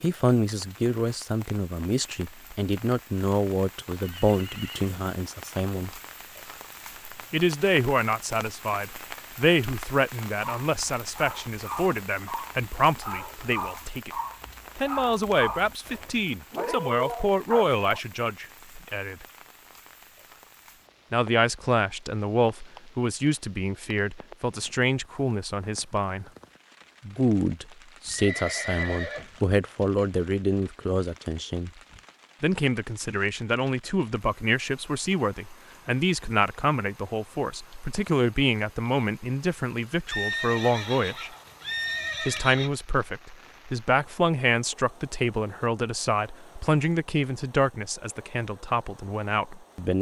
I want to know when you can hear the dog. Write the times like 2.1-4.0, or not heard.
10.4-18.0.